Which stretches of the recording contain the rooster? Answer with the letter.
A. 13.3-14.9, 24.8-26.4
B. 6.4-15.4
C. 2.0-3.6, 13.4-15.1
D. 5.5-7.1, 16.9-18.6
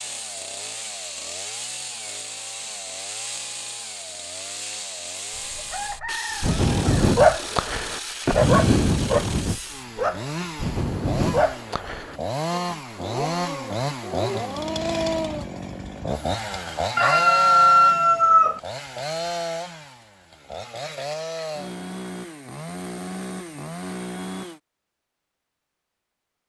D.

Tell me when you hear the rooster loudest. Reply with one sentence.
The volume of the rooster peaks at 18 seconds.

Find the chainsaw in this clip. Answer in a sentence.
You can hear the chainsaw from 0.0 to 24.6 s.